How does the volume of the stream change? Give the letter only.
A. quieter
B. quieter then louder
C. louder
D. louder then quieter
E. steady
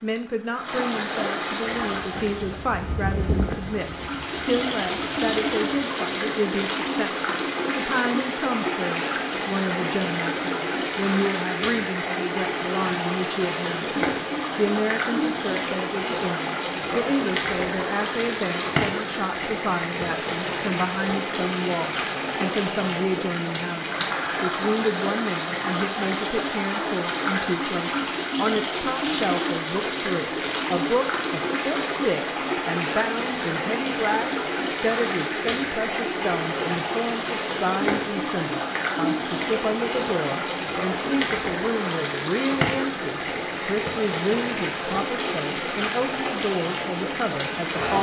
E.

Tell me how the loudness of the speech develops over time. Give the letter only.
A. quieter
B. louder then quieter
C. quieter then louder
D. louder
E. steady
E.